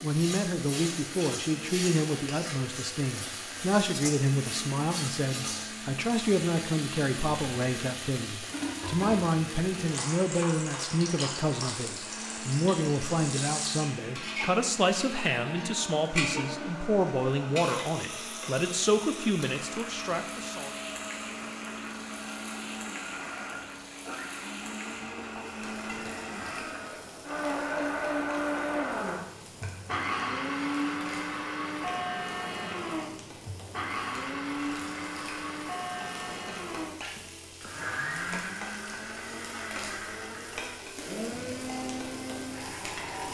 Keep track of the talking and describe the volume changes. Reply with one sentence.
The loudness of the talking stays about the same.